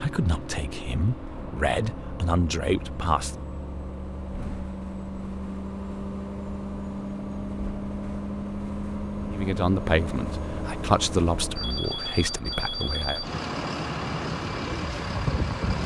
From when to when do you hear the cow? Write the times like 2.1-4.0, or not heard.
not heard.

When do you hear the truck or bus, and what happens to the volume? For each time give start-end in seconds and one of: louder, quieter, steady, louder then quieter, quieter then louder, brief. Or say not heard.
0.0-15.8 louder.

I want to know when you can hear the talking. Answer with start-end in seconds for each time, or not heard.
0.0-3.4, 9.3-13.2.